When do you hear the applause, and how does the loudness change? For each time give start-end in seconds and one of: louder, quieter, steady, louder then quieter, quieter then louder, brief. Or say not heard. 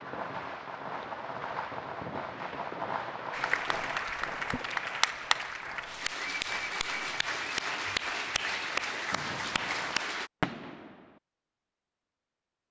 3.3-10.3 steady.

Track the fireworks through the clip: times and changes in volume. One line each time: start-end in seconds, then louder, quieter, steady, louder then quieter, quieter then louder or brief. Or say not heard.
0.0-11.2 quieter then louder.